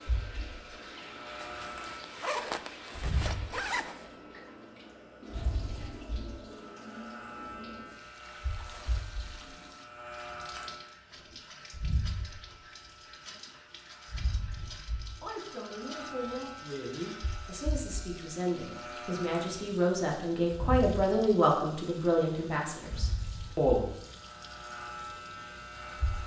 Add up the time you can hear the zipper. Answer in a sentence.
You can hear the zipper for 3 seconds altogether.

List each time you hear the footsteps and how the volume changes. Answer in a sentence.
The footsteps can't be heard in this clip.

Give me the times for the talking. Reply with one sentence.
You can hear the talking from 14.6 to 23.9 s.